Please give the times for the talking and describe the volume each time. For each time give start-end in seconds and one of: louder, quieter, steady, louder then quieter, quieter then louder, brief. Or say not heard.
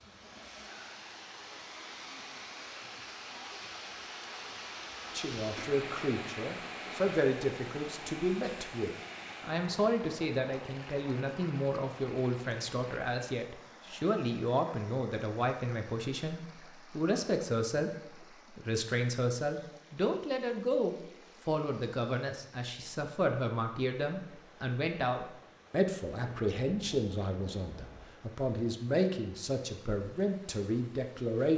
5.1-31.5 steady.